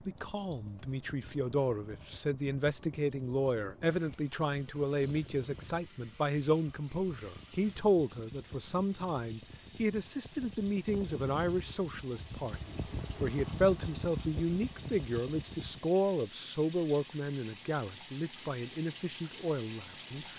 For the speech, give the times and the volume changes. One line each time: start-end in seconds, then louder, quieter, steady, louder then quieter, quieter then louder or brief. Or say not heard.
0.1-20.3 steady.